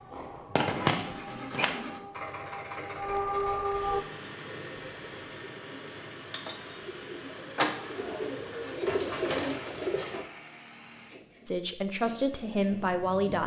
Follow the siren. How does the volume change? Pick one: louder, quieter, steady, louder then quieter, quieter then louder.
louder.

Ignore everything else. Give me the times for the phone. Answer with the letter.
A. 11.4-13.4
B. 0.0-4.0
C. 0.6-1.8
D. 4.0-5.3
C.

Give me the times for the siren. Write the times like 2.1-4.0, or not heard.
0.0-4.0.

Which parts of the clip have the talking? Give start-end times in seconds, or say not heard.
11.4-13.4.